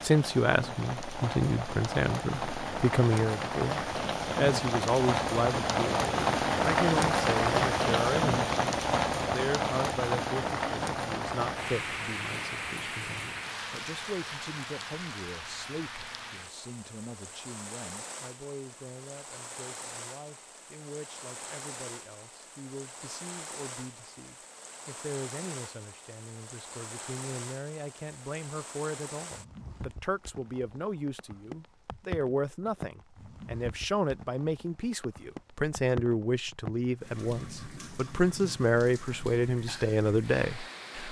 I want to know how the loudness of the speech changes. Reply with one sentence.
The loudness of the speech goes down, then up.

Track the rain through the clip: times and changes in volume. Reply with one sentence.
The rain can be heard from 0.0 to 41.0 s, getting quieter.